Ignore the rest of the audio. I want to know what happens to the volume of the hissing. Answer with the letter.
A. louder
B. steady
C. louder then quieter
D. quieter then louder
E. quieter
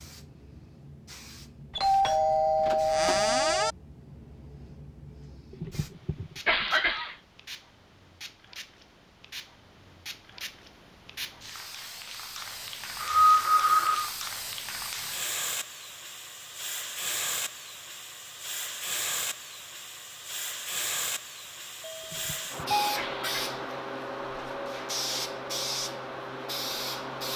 A.